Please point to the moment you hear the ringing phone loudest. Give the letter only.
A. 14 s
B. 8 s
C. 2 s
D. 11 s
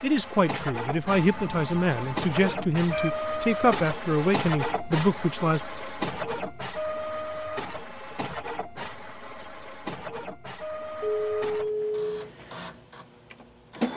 D.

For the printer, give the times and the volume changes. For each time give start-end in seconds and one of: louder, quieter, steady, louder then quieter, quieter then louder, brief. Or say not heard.
0.0-13.9 quieter.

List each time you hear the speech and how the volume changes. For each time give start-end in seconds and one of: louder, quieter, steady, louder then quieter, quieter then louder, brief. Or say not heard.
0.0-5.6 steady.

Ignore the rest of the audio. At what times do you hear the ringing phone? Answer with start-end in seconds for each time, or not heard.
1.1-3.1, 11.0-12.3.